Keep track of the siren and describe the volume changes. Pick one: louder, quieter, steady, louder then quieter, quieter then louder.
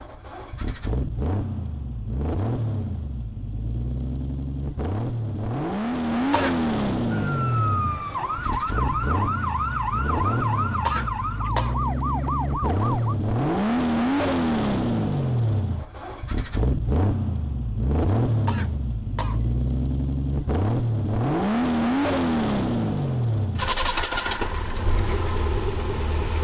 steady.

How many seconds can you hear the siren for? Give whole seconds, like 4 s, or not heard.
6 s.